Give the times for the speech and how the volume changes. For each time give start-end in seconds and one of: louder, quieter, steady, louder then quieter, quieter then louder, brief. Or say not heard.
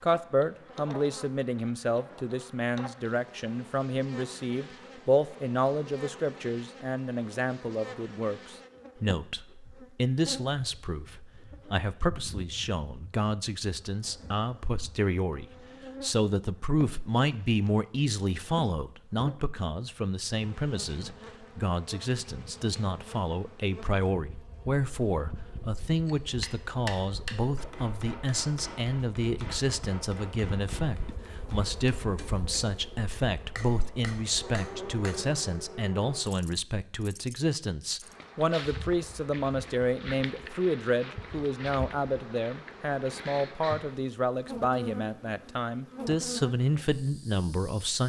0.0-48.0 steady.